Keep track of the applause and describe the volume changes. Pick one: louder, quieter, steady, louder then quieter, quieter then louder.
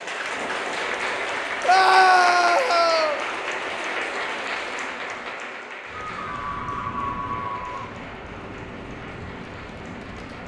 quieter.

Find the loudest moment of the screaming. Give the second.
2 s.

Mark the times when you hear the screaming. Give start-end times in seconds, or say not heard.
1.6-3.2, 6.0-7.9.